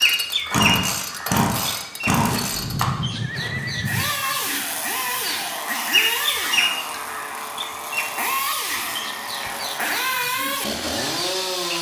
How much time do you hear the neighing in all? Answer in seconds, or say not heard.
2 s.